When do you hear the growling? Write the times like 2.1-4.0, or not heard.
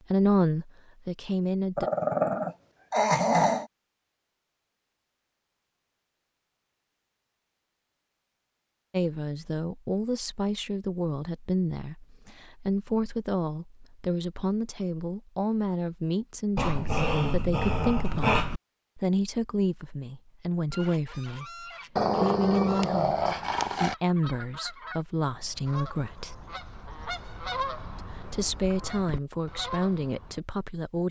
1.8-3.6, 16.6-18.6, 21.9-23.9.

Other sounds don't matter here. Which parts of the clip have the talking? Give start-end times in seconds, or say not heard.
0.1-1.9, 8.9-26.4, 27.9-31.0.